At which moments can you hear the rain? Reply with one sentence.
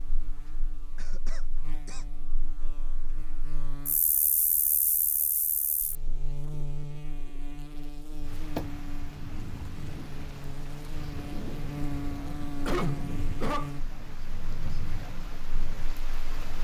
You can hear the rain from 8.2 to 16.5 s.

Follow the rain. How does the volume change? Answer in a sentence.
The loudness of the rain stays about the same.